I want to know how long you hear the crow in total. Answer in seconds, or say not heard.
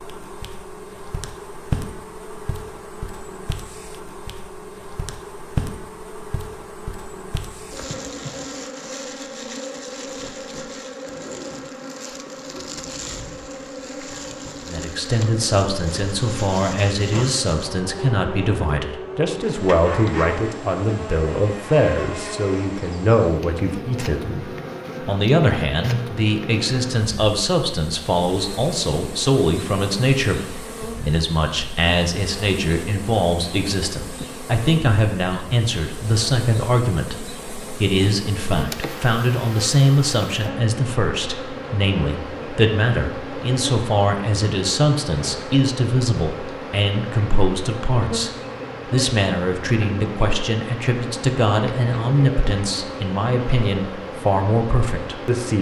not heard.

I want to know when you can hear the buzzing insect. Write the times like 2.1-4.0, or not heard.
0.0-55.5.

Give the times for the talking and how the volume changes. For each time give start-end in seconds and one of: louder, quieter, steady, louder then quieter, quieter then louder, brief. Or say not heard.
14.7-55.5 steady.